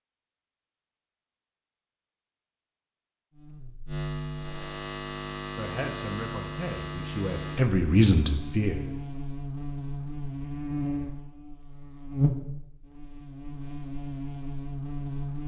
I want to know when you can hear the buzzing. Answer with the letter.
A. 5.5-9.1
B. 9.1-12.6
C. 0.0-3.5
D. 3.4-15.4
D.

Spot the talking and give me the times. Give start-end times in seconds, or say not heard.
5.5-9.1.